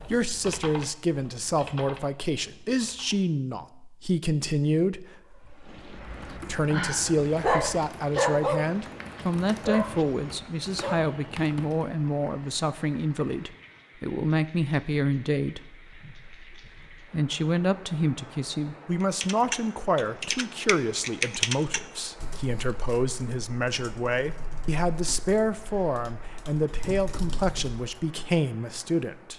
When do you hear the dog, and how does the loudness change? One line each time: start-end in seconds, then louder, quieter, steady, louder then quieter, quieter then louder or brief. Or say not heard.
5.5-11.1 louder then quieter.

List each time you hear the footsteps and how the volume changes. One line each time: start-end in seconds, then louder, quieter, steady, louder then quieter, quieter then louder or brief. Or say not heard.
not heard.